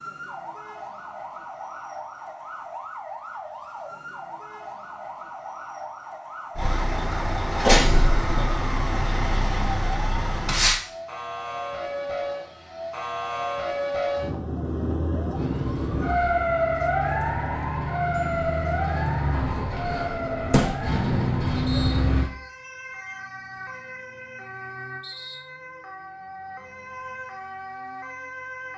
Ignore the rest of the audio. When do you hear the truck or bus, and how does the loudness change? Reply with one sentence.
The truck or bus can be heard from 6.5 to 10.8 s, getting louder then quieter; and from 15.3 to 22.3 s, getting louder.